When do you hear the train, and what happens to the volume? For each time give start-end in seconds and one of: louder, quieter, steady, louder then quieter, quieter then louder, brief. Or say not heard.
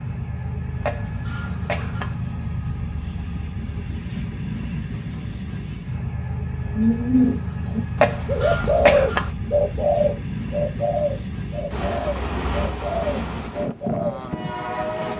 0.0-15.1 steady.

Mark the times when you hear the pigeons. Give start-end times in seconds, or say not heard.
6.7-14.2.